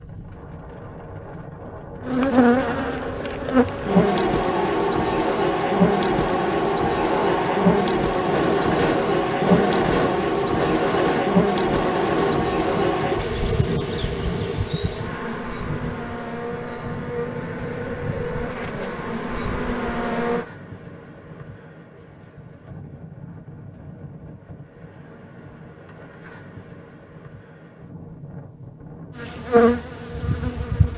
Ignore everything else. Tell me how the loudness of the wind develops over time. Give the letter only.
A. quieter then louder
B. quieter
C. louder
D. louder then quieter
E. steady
D.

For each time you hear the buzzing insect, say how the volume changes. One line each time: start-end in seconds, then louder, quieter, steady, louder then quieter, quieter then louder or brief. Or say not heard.
2.0-20.4 quieter
29.1-30.9 brief.